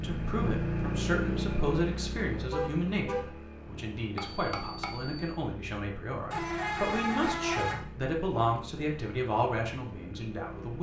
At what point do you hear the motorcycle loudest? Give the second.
1 s.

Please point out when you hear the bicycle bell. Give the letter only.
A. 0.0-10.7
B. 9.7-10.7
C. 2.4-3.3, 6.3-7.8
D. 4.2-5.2
D.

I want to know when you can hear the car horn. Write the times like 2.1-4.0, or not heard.
2.4-3.3, 6.3-7.8.